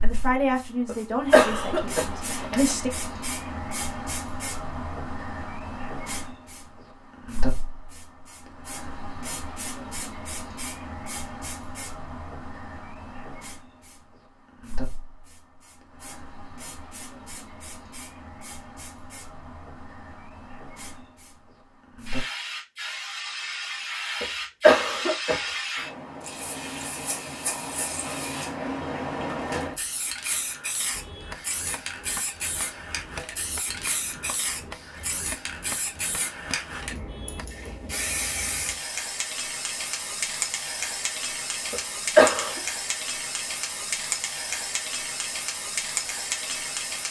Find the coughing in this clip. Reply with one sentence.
The coughing can be heard from 0.8 to 2.8 s, from 24.2 to 25.4 s and from 41.7 to 42.6 s.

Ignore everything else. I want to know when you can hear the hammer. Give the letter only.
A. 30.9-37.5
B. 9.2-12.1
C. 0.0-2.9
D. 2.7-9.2
A.